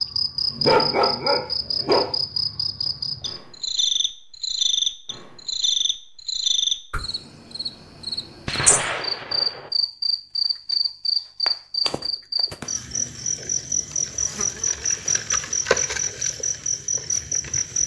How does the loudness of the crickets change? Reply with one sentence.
The loudness of the crickets stays about the same.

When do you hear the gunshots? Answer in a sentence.
You can hear the gunshots from 8.4 to 9.7 s.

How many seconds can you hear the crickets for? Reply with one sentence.
The crickets can be heard for 18 seconds in total.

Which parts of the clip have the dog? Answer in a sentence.
You can hear the dog from 0.5 to 2.0 s.